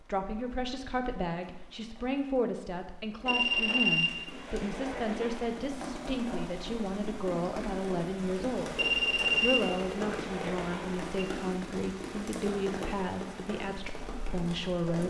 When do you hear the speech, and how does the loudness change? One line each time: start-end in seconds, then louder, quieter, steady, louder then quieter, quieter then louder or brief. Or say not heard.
0.1-15.0 steady.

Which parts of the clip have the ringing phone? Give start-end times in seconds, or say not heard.
3.2-5.5, 8.8-11.1.